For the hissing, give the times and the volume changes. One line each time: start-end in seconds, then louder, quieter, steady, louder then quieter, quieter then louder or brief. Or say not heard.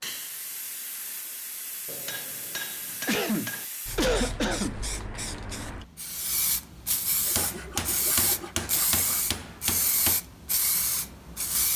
0.0-11.7 louder.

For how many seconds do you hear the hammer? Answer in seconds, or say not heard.
5 s.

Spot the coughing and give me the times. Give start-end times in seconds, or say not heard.
3.0-4.8.